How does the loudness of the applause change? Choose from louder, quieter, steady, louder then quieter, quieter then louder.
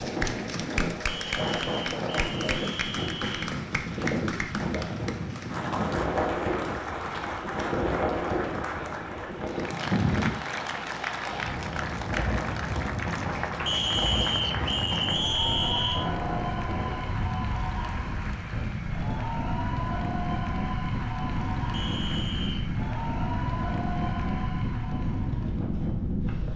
steady.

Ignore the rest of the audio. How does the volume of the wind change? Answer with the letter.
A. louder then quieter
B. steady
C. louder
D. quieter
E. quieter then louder
B.